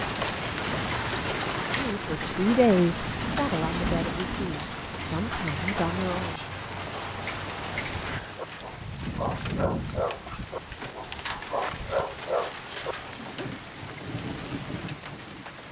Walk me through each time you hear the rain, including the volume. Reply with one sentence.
The rain can be heard from 0.0 to 15.6 s, getting quieter.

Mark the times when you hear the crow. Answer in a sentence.
You can't hear the crow here.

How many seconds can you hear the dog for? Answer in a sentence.
The dog can be heard for 5 seconds in total.